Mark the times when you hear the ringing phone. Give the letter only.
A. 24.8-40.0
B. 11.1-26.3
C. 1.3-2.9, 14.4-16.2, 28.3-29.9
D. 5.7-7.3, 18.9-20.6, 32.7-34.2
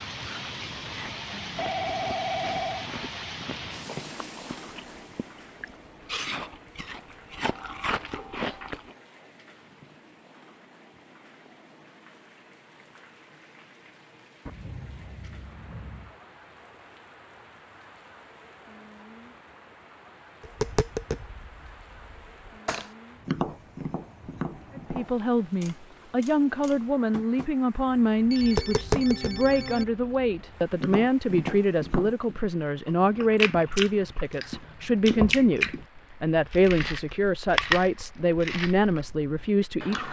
C.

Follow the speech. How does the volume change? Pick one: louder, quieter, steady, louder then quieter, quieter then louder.
steady.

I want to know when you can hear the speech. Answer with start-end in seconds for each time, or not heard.
24.8-40.0.